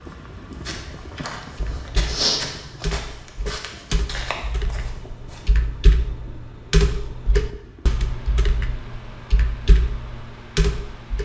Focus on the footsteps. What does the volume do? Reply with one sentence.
The loudness of the footsteps goes up, then down.